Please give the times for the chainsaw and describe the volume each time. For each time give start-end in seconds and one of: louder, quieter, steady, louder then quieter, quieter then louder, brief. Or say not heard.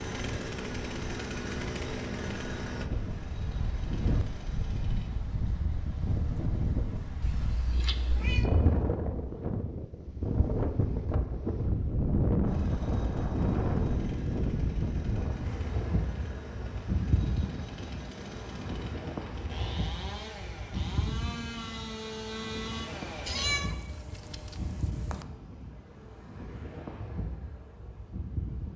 0.0-5.2 quieter
12.4-23.6 louder.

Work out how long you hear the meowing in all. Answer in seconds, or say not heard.
3 s.